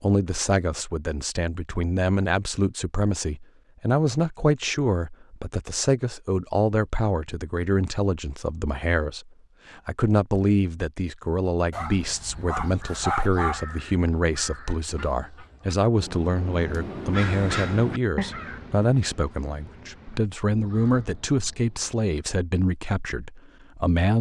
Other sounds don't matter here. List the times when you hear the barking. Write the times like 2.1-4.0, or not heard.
11.7-13.7.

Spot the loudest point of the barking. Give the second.
13 s.